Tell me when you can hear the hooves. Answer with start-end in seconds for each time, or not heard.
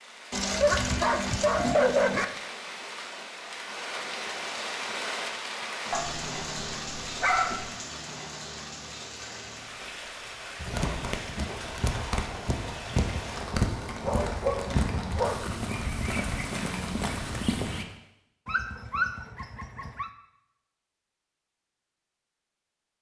10.6-17.9.